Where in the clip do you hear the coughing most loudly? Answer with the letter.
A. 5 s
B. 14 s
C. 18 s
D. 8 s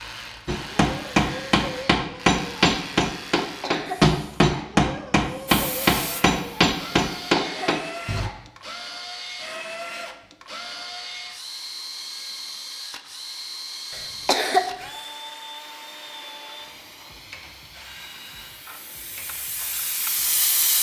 B.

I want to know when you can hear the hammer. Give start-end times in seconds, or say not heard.
0.5-8.3.